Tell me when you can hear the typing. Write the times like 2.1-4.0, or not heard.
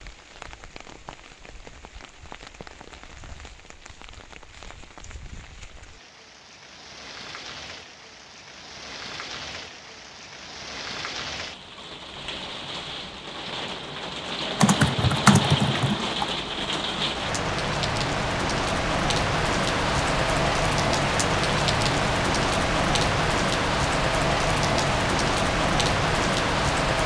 14.6-16.2.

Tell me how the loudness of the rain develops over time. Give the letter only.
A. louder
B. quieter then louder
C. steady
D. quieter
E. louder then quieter
A.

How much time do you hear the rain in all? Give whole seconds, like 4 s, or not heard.
27 s.